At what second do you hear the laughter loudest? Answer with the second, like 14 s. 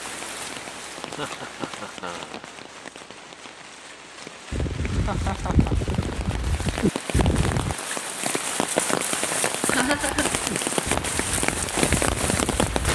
10 s.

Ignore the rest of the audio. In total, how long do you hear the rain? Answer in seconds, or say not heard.
13 s.